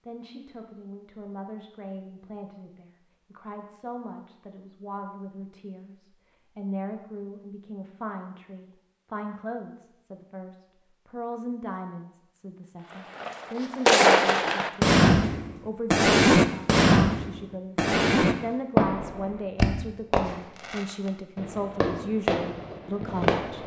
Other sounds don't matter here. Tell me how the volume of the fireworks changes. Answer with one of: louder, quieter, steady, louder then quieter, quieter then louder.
quieter.